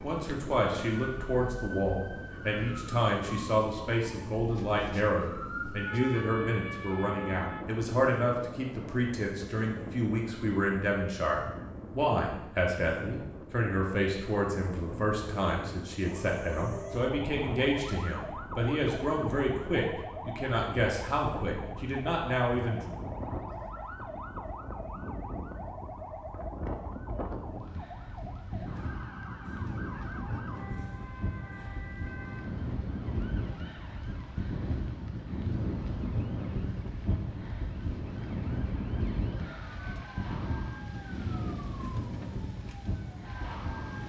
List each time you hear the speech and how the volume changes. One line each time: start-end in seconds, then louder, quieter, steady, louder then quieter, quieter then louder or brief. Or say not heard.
0.0-22.8 steady.